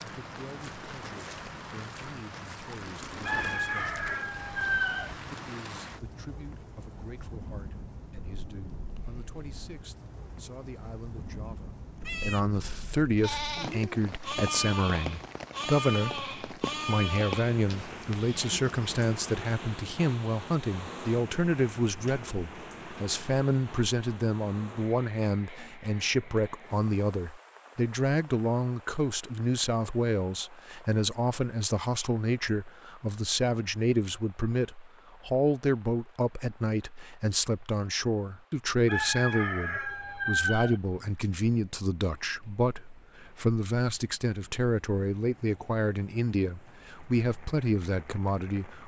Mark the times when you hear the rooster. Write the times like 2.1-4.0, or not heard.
3.2-5.2, 38.9-40.8.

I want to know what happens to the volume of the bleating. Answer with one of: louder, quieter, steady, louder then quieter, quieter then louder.
quieter.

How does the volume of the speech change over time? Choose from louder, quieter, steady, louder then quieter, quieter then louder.
louder.